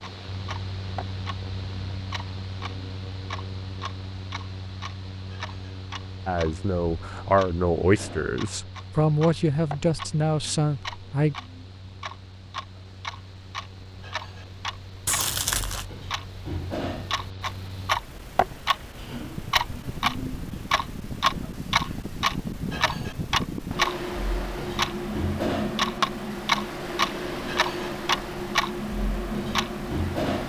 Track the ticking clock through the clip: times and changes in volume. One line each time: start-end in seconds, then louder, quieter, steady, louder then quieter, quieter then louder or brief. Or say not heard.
0.0-30.4 louder.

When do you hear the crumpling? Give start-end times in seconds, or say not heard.
15.1-15.8.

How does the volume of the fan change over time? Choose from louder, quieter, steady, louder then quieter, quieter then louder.
quieter then louder.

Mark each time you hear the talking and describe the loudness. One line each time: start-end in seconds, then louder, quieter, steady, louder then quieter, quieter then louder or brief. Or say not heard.
6.2-11.3 steady.